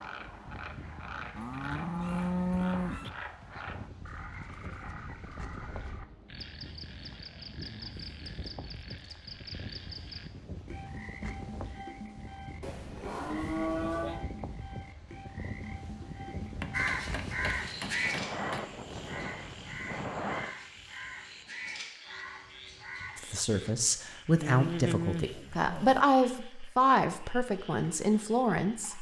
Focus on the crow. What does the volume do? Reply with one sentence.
The loudness of the crow goes down.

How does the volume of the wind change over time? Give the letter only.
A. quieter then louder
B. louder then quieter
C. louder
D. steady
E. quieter
C.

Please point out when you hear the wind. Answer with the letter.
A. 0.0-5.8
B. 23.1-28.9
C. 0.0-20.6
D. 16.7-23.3
C.